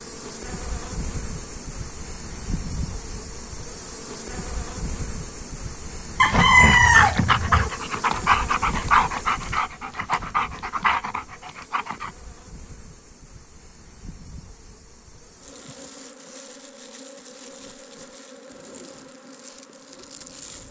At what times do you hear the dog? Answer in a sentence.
The dog can be heard from 6.2 to 12.1 s.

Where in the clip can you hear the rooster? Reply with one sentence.
You can hear the rooster from 6.2 to 7.7 s.